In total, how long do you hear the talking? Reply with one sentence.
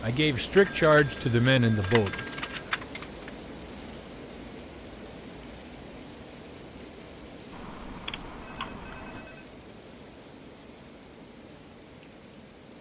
The talking can be heard for 2 seconds in total.